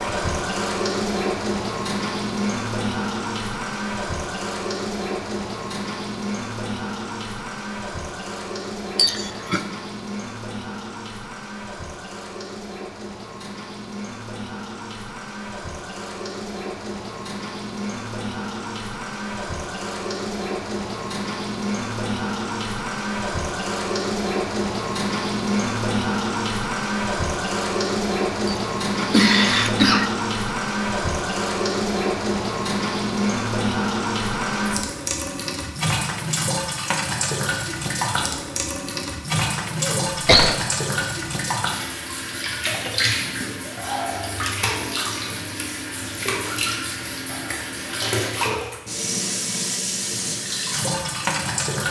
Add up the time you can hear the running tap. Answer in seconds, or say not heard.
52 s.